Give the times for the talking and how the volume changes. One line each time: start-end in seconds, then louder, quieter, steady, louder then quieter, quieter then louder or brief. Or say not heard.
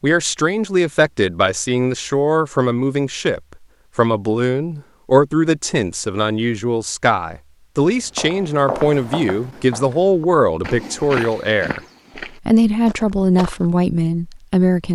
0.0-14.9 steady.